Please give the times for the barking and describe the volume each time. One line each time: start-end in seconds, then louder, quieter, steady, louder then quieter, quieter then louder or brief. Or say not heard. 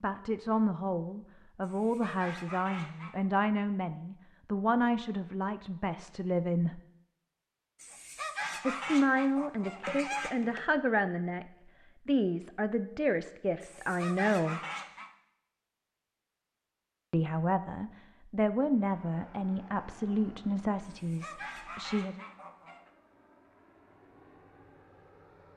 not heard.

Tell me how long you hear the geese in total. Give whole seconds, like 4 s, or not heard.
8 s.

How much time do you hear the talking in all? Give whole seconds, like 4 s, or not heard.
17 s.